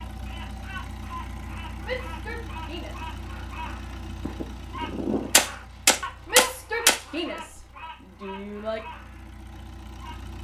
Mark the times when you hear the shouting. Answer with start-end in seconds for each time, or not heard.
1.8-3.1, 6.2-8.8.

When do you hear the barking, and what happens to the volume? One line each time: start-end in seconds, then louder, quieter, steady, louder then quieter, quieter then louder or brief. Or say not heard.
not heard.